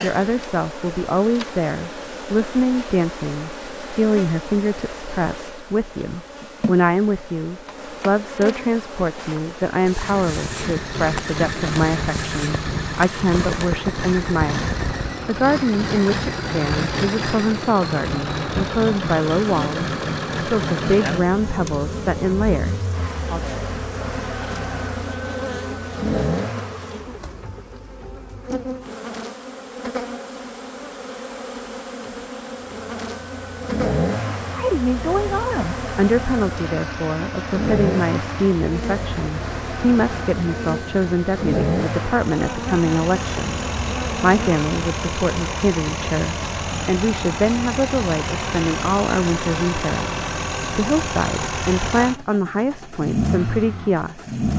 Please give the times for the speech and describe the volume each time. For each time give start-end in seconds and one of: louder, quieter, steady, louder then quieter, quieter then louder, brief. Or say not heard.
0.0-23.6 steady
34.4-54.4 steady.